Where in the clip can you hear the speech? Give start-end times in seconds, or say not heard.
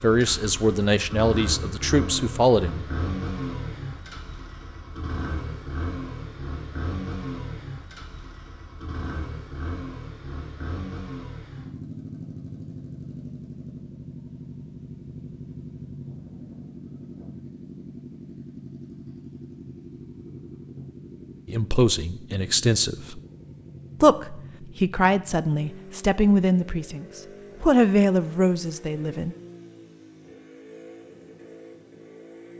0.0-2.9, 21.4-23.2, 24.0-29.4.